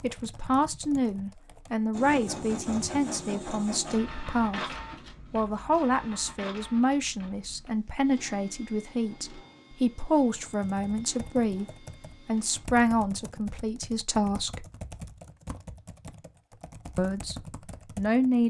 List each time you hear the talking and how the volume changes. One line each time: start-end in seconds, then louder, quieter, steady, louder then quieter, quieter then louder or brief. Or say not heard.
0.0-14.7 steady
16.9-17.4 brief
17.9-18.4 brief.